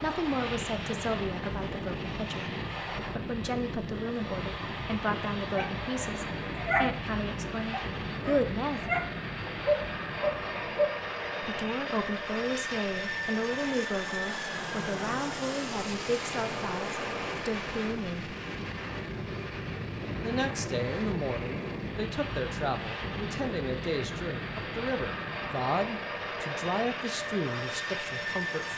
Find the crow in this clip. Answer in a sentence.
You can't hear the crow here.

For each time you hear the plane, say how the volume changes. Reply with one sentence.
You can hear the plane from 0.0 to 28.7 s, at a steady volume.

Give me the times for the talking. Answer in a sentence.
The talking can be heard from 0.0 to 2.5 s, from 3.1 to 8.8 s, from 11.4 to 18.4 s and from 20.2 to 28.7 s.